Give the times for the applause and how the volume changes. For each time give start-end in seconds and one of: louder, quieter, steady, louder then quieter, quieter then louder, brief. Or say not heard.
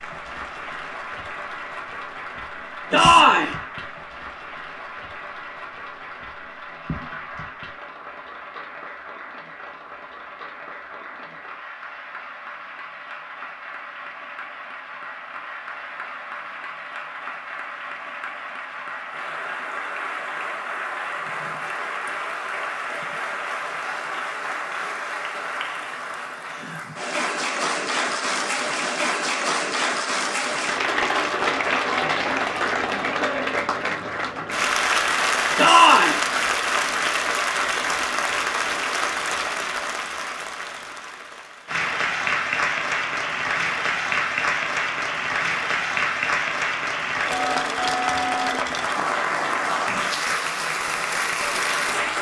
0.0-52.1 louder.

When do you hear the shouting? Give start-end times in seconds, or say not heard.
2.9-3.5, 35.5-36.2.